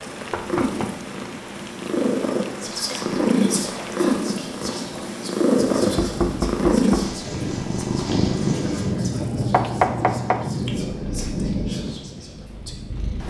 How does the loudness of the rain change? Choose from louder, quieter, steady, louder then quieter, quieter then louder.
louder.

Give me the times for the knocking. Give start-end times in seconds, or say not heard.
0.3-0.9, 6.0-7.1, 9.5-10.5.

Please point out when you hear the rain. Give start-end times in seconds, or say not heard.
0.0-13.2.